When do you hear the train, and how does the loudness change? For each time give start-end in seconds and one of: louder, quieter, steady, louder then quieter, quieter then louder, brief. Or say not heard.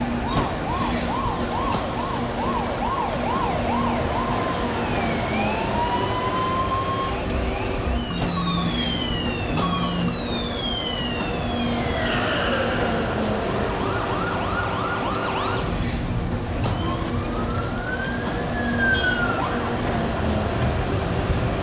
0.0-21.5 steady.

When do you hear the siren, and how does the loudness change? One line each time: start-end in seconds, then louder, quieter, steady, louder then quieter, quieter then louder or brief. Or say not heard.
0.1-21.5 steady.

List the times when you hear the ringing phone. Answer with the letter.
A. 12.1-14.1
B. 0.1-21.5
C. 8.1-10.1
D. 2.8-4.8
C.